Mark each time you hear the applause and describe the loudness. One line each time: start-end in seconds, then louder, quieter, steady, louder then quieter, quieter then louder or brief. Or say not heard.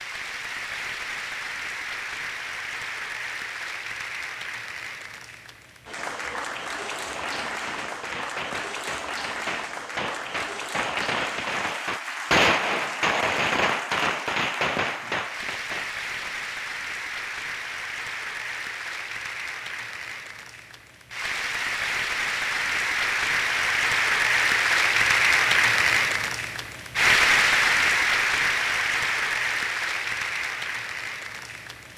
0.0-31.9 louder.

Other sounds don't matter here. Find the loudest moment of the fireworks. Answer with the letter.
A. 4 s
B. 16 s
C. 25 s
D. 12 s
D.